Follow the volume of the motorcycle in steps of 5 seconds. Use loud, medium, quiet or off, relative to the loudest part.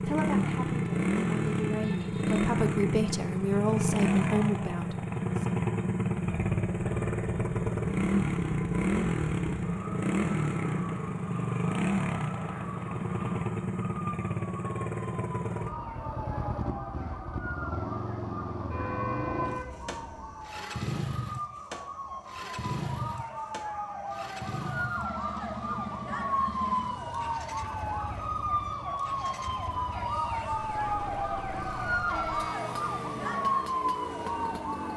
loud, loud, loud, medium, medium, quiet, quiet.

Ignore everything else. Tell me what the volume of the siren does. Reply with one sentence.
The volume of the siren goes up.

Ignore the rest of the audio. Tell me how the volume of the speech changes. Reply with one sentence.
The volume of the speech goes up.